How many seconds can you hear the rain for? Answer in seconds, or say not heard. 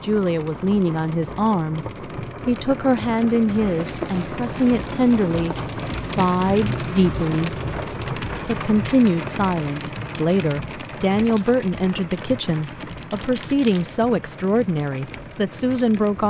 16 s.